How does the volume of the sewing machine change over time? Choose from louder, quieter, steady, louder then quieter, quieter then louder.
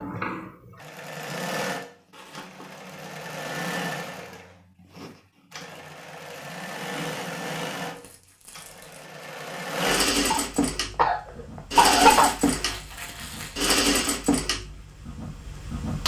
louder.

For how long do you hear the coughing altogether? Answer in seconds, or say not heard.
2 s.